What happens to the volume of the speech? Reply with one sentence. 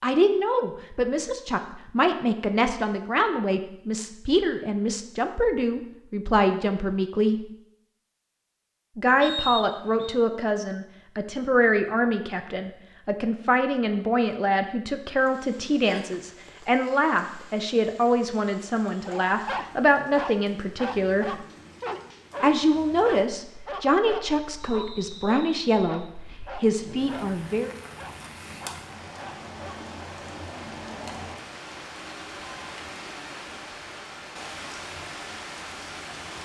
The volume of the speech stays about the same.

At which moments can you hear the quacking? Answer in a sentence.
You can't hear the quacking here.